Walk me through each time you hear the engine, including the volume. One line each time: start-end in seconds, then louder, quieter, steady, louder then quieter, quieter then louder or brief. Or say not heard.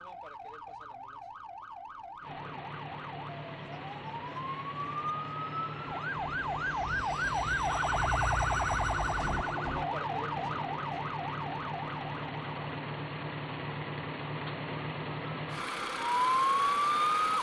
2.2-17.3 louder.